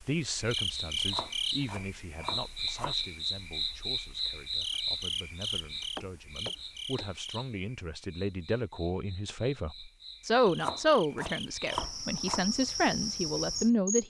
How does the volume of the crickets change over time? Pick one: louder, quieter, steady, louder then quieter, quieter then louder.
quieter then louder.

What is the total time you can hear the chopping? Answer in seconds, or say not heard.
5 s.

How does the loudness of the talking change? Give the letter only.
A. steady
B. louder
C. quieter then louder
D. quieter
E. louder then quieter
C.